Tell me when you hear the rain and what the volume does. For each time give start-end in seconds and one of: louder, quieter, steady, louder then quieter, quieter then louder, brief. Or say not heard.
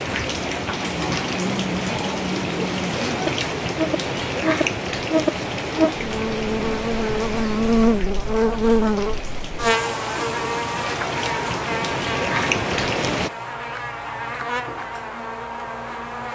0.0-13.3 quieter then louder.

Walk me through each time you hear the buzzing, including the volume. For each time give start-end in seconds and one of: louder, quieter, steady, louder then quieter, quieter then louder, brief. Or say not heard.
0.1-16.3 louder then quieter.